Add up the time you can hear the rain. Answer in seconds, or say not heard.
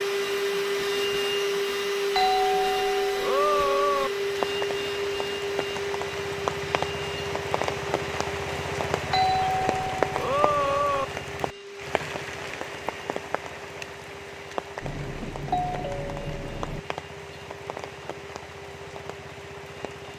16 s.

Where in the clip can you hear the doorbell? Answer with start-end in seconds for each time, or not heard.
2.1-4.1, 9.1-11.1, 14.8-16.8.